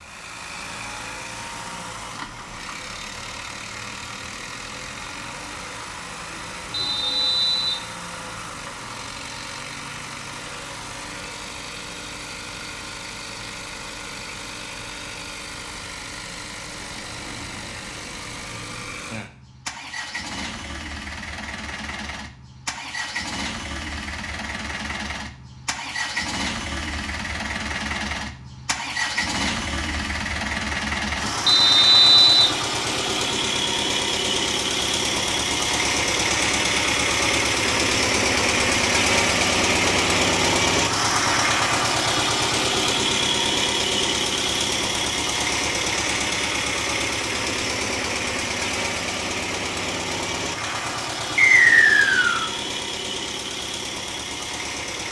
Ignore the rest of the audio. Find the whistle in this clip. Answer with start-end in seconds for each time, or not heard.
6.7-7.8, 31.4-32.5, 51.4-52.5.